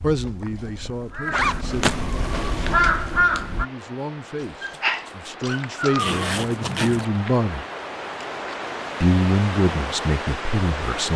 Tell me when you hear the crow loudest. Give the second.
3 s.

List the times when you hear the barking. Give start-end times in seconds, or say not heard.
4.3-6.2.